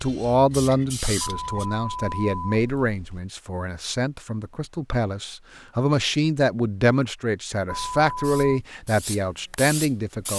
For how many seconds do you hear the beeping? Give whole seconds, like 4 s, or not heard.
3 s.